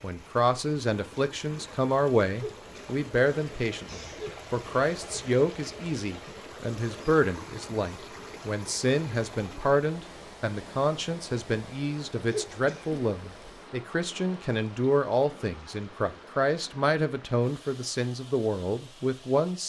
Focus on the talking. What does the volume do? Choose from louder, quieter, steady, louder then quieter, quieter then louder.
steady.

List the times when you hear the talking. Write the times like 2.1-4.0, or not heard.
0.0-19.6.